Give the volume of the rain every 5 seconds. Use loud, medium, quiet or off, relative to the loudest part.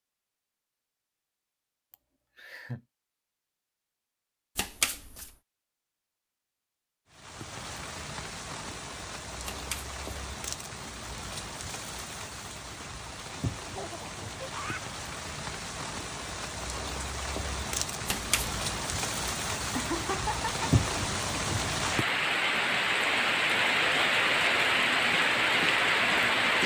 off, quiet, quiet, medium, loud, loud.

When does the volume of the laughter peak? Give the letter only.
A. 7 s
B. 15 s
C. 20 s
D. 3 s
C.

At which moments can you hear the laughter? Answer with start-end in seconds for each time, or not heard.
1.9-2.8, 13.8-14.8, 19.7-20.5.